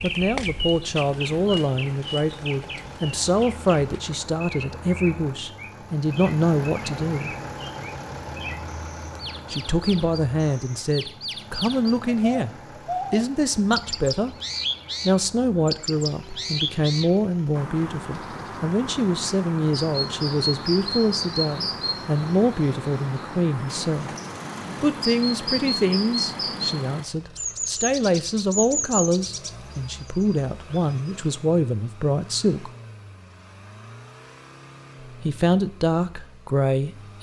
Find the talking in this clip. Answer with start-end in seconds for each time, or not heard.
0.0-7.3, 9.5-12.5, 13.1-14.3, 15.1-24.1, 24.8-32.7, 35.2-37.1.